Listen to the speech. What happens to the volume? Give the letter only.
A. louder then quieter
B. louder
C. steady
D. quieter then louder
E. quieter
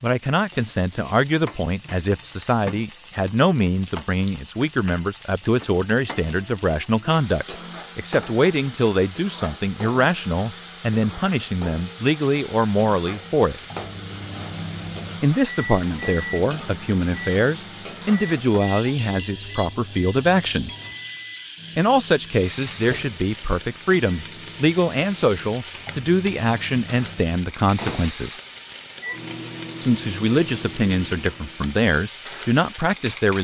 C.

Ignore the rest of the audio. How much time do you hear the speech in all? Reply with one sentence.
You can hear the speech for 29 seconds altogether.